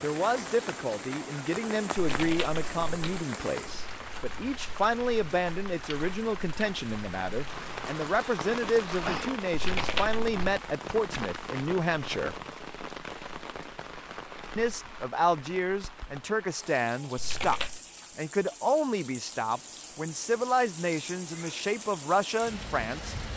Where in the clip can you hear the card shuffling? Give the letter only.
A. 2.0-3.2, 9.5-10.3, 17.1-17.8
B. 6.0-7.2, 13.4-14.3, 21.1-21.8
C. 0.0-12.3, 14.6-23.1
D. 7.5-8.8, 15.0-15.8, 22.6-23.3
A.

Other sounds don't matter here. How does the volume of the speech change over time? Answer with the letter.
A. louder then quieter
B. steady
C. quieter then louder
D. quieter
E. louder
B.